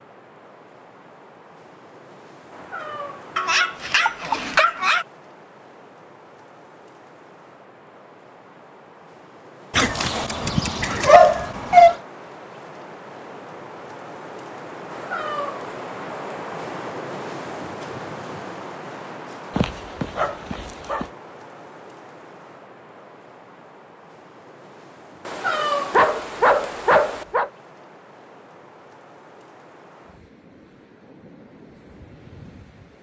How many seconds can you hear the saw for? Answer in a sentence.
You can't hear the saw here.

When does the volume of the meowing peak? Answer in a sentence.
The volume of the meowing peaks at 26 seconds.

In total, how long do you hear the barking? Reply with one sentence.
The barking can be heard for 7 seconds in total.